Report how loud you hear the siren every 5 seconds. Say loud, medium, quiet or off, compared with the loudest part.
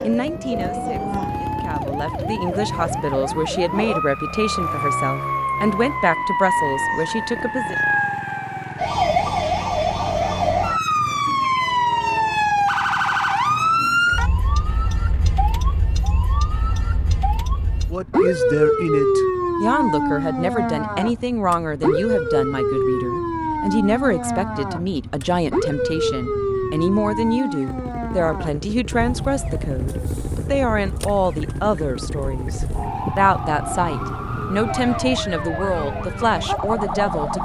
medium, loud, loud, loud, loud, medium, medium, medium.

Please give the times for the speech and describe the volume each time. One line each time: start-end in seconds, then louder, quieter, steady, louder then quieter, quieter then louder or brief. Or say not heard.
0.0-7.8 louder
17.9-37.3 steady.